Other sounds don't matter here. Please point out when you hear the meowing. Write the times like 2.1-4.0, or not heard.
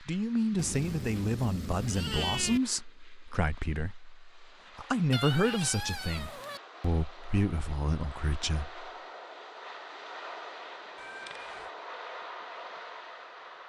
0.6-2.6, 5.1-6.6, 10.9-11.7.